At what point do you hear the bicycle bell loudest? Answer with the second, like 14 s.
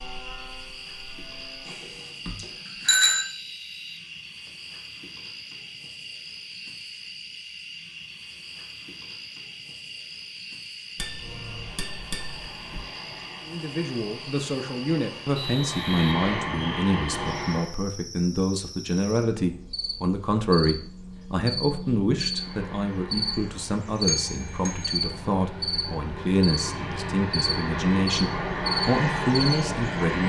3 s.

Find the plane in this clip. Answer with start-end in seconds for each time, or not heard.
0.0-1.8, 11.1-17.7, 22.3-30.2.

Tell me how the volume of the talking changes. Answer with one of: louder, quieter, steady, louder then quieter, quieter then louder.
steady.